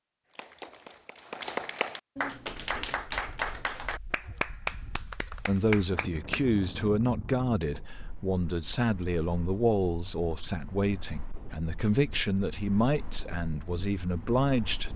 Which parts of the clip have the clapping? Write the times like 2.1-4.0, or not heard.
0.3-6.5.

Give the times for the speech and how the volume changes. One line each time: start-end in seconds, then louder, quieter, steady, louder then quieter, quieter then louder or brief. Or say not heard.
5.5-14.9 steady.